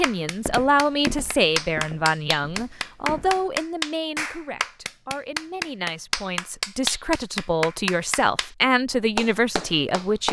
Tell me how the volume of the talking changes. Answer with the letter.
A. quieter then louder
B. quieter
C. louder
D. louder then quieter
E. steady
A.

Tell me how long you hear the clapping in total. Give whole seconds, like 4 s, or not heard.
10 s.